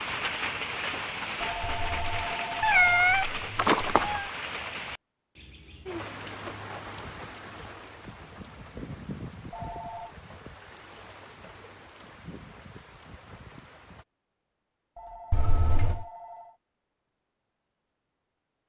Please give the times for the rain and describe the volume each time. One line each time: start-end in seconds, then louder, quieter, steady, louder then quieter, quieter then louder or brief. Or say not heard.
0.0-14.1 quieter.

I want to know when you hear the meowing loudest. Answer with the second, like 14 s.
3 s.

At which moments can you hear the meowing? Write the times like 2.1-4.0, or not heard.
1.6-4.2, 15.3-16.1.